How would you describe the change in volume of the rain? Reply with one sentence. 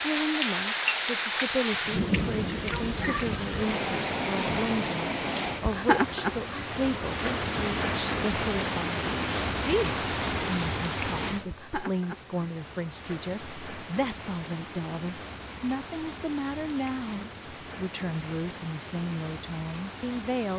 The loudness of the rain goes down.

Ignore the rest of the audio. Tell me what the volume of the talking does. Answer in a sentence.
The volume of the talking stays about the same.